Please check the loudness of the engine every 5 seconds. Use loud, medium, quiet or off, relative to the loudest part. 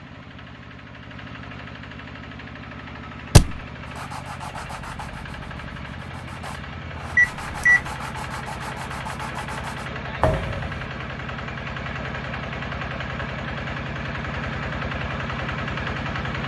medium, medium, loud, loud.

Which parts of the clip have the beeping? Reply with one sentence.
The beeping can be heard from 7.2 to 7.8 s.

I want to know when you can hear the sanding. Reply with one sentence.
The sanding can be heard from 3.9 to 9.9 s.